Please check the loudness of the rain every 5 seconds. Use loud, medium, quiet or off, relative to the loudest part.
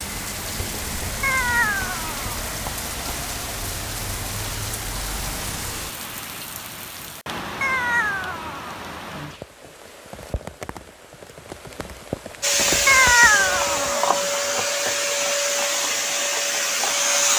loud, loud, loud, off.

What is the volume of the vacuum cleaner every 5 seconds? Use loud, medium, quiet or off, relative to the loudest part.
off, off, loud, loud.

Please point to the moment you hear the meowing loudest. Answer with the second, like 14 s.
13 s.